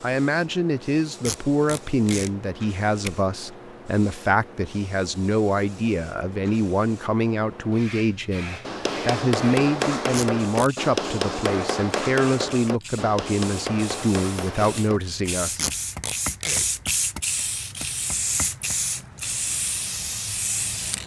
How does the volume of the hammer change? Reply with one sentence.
The loudness of the hammer goes down.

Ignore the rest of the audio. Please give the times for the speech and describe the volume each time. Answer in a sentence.
You can hear the speech from 0.0 to 15.7 s, at a steady volume.